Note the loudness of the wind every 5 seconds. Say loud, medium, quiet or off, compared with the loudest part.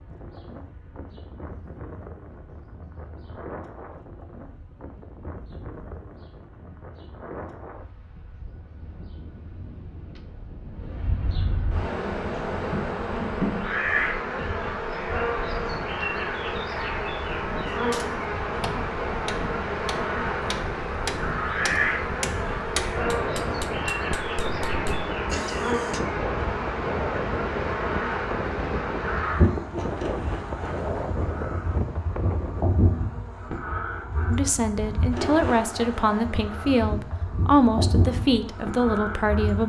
medium, medium, medium, medium, loud, loud, loud, off.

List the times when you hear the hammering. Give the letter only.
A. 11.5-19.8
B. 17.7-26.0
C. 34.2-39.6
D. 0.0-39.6
B.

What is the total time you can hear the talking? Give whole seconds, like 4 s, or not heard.
5 s.